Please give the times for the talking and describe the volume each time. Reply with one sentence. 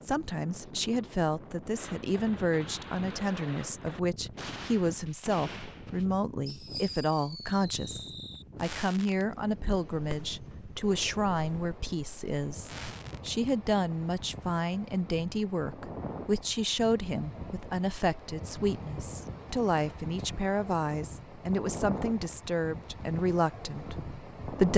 The talking can be heard from 0.0 to 24.7 s, at a steady volume.